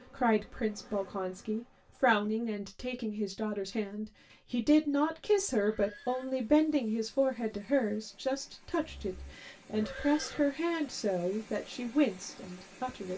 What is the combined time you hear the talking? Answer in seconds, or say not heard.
13 s.